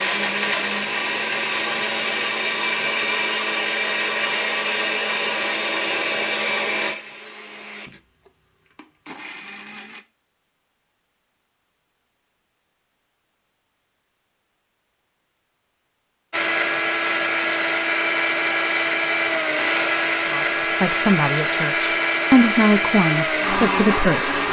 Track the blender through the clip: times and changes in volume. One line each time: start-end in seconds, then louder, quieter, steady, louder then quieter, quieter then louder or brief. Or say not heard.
0.0-10.1 quieter
16.3-24.4 steady.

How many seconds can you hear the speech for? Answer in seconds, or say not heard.
4 s.